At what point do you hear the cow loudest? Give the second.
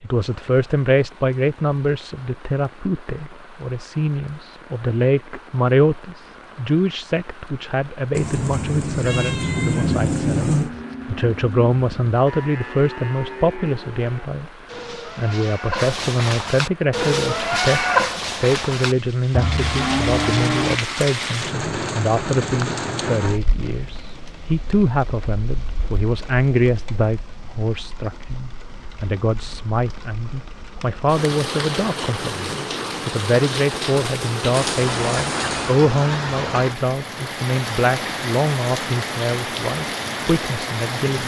18 s.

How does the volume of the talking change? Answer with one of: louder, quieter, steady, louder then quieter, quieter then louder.
steady.